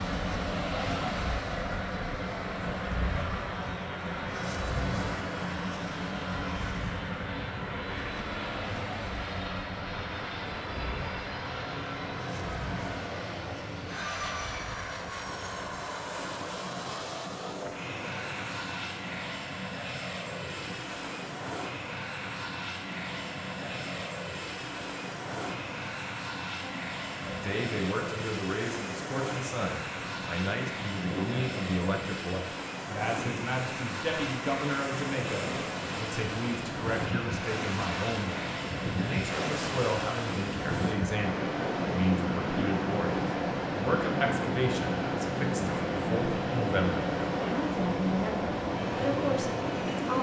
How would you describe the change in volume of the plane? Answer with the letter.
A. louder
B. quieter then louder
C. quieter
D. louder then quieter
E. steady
E.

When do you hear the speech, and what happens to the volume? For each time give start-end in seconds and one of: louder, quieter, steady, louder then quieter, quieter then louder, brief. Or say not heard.
26.6-50.1 steady.